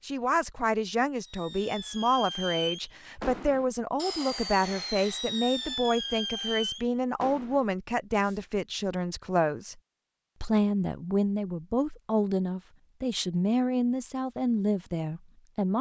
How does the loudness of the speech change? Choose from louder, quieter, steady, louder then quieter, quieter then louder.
steady.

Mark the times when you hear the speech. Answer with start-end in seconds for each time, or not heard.
0.1-9.8, 10.4-15.7.